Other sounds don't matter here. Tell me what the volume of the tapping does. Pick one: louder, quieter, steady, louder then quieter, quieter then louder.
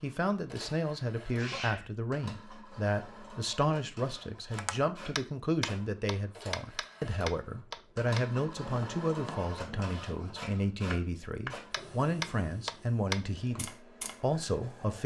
quieter then louder.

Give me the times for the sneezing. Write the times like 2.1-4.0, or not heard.
1.4-1.9.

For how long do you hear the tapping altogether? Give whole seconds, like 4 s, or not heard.
10 s.